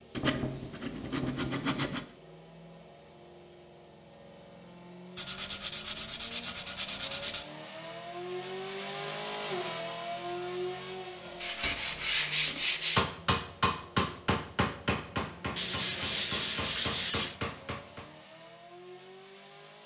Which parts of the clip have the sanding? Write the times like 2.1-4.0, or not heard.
0.1-2.0, 5.2-7.5, 11.4-13.1, 15.6-17.4.